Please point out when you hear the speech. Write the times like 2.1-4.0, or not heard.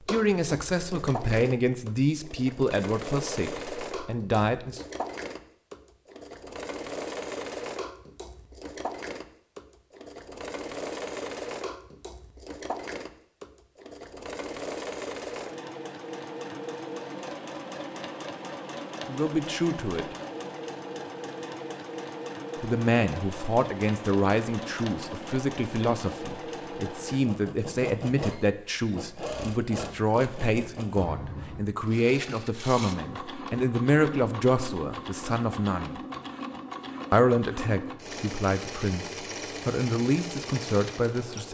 0.1-4.8, 19.1-20.1, 22.6-36.0, 37.1-41.4.